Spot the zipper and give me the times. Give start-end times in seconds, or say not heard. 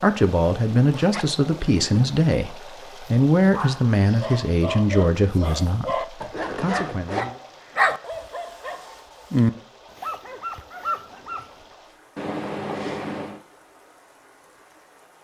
0.9-1.4, 6.2-7.3, 12.2-13.4.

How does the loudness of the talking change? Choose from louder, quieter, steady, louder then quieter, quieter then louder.
quieter.